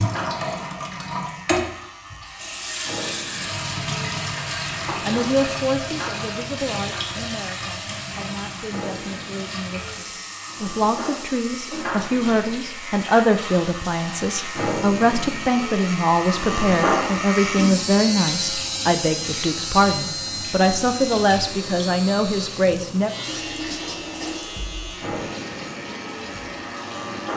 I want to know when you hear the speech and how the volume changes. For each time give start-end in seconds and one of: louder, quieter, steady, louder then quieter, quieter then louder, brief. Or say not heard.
5.0-23.1 louder.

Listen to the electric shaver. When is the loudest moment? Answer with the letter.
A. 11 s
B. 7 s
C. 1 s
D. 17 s
D.